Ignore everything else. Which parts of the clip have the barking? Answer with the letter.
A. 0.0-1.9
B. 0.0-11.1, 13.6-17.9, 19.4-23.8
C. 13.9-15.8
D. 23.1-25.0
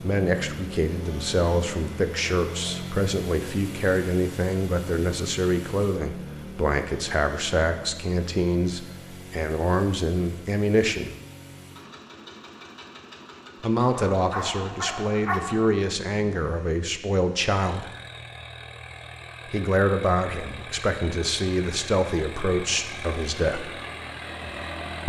C.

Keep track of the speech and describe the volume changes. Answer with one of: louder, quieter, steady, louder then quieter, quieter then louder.
steady.